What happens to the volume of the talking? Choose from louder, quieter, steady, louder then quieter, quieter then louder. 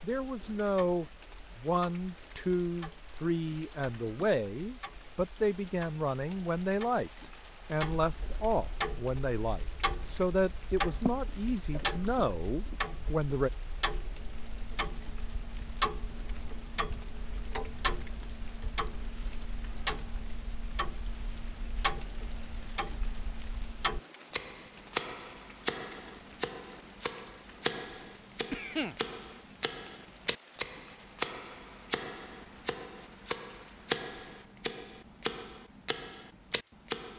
steady.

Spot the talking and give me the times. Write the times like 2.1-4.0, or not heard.
0.0-13.5.